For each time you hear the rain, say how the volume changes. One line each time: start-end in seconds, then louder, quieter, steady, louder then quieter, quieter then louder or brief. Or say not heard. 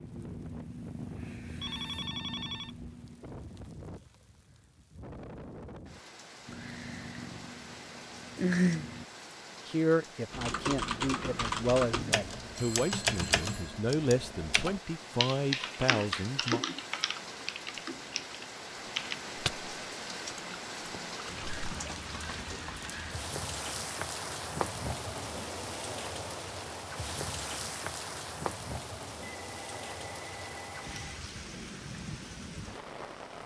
0.0-33.4 louder.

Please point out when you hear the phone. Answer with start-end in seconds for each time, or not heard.
1.6-2.8, 11.9-13.8, 29.2-31.1.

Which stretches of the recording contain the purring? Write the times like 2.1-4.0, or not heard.
0.0-3.2, 6.5-9.1.